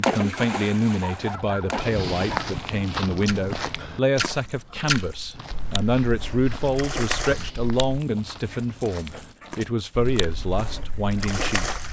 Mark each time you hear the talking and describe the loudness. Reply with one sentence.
You can hear the talking from 0.0 to 11.8 s, at a steady volume.